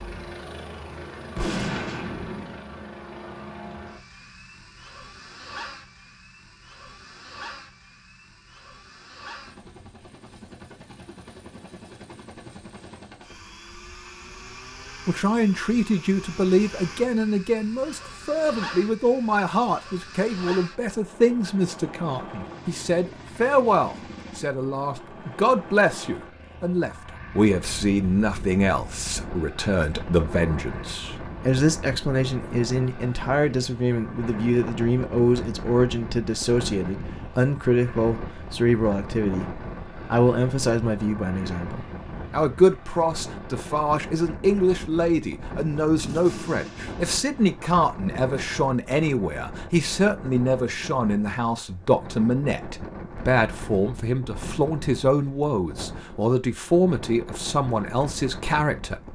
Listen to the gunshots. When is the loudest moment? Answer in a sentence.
The volume of the gunshots peaks at 2 seconds.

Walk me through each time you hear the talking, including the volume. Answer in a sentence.
The talking can be heard from 15.1 to 59.0 s, at a steady volume.